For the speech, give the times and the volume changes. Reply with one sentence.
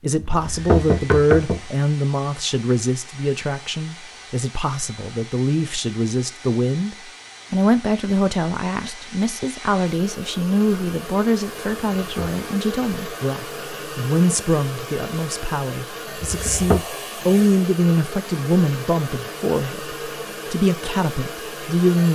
The speech can be heard from 0.0 to 22.1 s, at a steady volume.